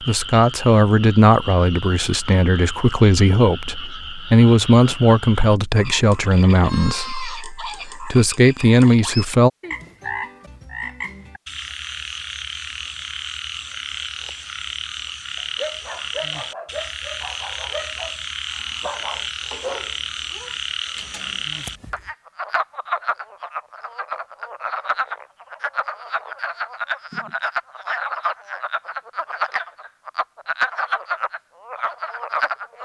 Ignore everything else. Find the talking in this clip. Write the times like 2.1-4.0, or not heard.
0.0-9.5.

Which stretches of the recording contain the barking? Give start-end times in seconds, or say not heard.
15.3-22.1.